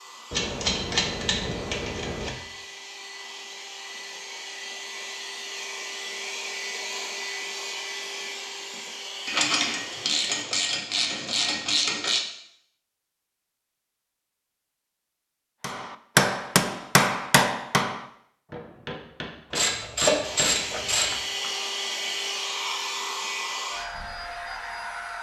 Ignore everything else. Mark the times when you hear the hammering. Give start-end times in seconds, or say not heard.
15.6-21.5.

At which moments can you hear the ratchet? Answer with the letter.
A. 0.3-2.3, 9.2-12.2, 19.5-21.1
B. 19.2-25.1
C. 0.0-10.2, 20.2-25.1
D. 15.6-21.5
A.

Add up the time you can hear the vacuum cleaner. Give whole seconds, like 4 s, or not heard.
15 s.